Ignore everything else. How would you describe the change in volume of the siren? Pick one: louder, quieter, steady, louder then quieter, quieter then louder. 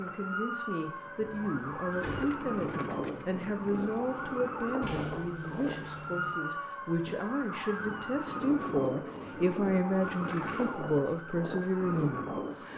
steady.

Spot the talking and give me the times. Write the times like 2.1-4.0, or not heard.
0.0-12.7.